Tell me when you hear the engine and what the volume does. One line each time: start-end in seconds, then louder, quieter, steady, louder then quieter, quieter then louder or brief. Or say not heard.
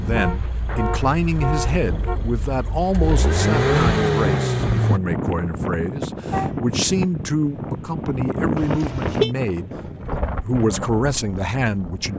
0.0-5.0 louder.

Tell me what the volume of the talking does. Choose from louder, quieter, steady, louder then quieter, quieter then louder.
steady.